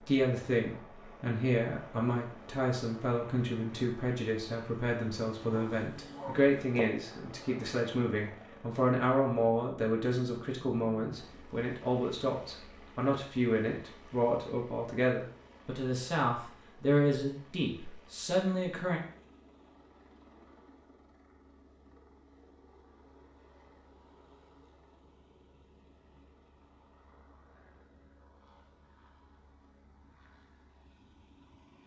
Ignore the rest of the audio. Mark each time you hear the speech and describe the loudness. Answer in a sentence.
The speech can be heard from 0.1 to 19.0 s, at a steady volume.